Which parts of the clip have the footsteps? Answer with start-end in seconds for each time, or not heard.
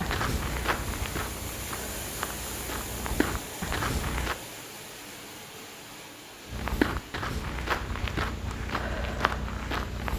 0.0-4.3, 6.5-10.1.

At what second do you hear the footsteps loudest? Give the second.
7 s.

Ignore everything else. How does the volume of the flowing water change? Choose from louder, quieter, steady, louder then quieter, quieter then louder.
quieter.